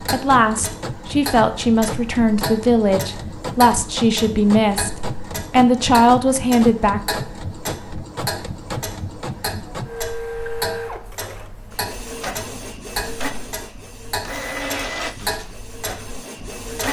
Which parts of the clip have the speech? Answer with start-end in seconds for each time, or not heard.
0.1-7.0.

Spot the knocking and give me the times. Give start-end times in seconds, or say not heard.
not heard.